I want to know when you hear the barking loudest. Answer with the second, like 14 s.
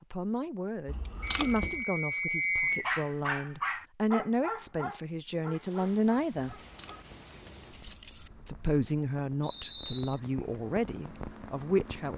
3 s.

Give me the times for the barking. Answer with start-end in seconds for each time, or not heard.
2.7-7.1.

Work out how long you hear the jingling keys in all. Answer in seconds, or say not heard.
3 s.